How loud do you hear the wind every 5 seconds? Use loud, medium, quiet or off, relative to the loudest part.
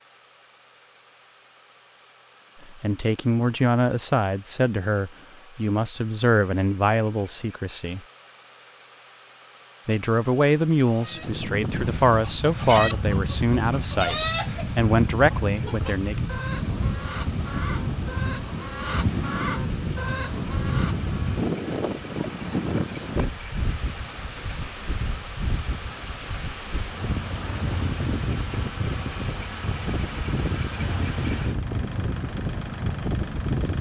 off, off, loud, loud, loud, loud, loud.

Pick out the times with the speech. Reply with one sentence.
You can hear the speech from 2.7 to 8.0 s and from 9.8 to 16.2 s.